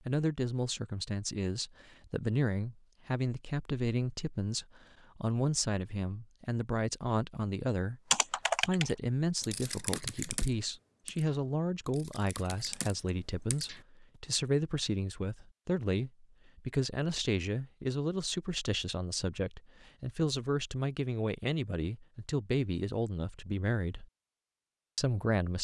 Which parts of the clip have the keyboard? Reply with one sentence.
The keyboard can be heard from 8.1 to 13.8 s.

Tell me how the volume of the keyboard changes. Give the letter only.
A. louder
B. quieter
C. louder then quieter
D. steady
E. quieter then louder
E.